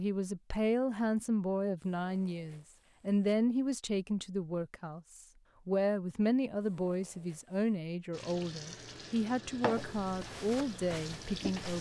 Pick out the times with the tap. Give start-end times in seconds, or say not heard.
8.1-11.7.